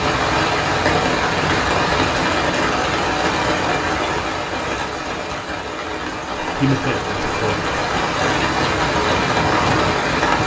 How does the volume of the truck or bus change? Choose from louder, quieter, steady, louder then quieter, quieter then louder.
quieter then louder.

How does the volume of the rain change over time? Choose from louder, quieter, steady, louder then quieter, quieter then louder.
quieter then louder.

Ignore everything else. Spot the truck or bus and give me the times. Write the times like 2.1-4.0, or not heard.
0.0-10.4.